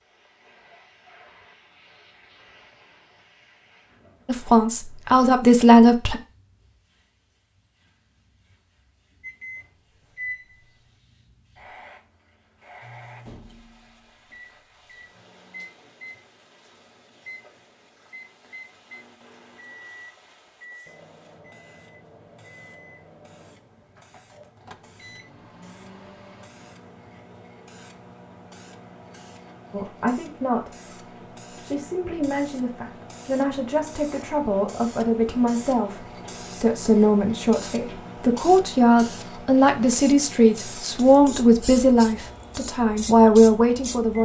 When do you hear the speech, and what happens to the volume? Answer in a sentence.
You can hear the speech briefly from 4.2 to 6.2 s; briefly from 29.7 to 30.8 s; and from 31.5 to 44.2 s, getting louder.